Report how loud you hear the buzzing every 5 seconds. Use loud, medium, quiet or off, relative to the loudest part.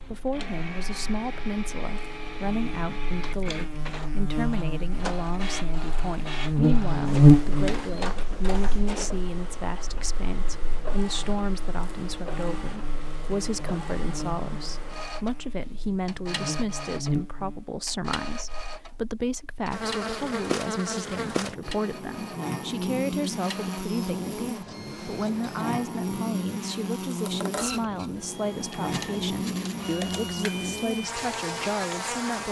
quiet, loud, quiet, quiet, medium, medium, medium.